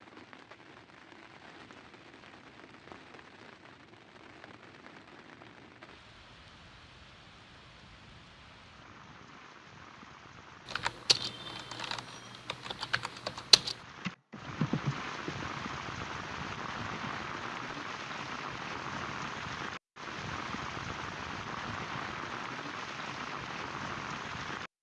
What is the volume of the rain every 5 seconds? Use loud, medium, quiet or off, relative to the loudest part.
quiet, quiet, medium, loud, loud.